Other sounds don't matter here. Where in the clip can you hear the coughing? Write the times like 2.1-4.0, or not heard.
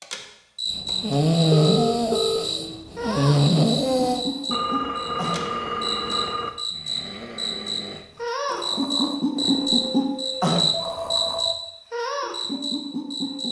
not heard.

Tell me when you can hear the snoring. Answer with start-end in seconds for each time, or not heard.
0.7-11.4.